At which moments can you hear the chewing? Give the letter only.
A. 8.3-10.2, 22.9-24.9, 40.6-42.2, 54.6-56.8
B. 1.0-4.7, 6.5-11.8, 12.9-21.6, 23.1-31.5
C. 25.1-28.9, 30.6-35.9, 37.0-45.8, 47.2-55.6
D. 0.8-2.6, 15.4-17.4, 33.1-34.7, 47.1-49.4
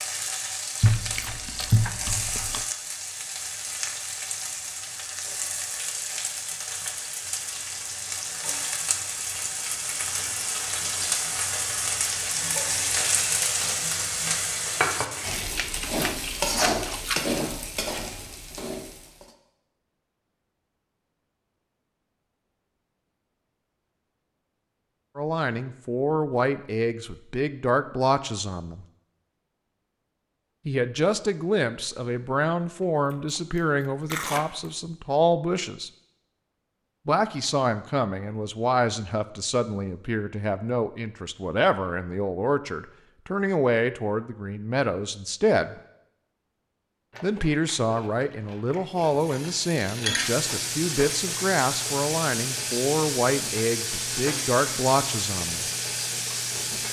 D.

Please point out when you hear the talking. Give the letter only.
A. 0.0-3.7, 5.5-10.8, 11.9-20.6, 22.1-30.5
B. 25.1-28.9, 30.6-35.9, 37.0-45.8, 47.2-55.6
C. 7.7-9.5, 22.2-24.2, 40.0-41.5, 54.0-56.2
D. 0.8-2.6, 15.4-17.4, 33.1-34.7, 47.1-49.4
B.